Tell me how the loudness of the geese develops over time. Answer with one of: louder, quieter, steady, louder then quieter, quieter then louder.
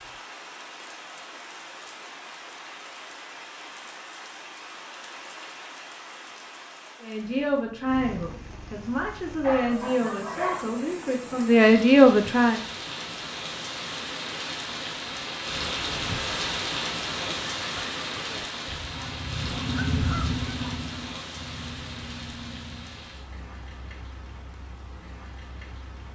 louder then quieter.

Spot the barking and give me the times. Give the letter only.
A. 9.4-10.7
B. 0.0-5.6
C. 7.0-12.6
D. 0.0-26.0
A.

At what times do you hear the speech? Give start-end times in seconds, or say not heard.
7.0-12.6.